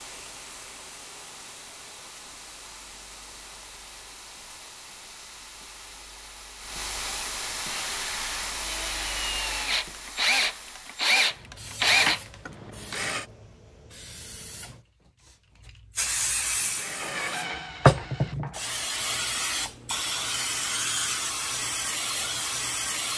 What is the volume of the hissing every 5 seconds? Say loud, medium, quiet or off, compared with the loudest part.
quiet, medium, quiet, loud, loud.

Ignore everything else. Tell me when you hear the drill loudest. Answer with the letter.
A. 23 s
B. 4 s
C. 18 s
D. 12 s
D.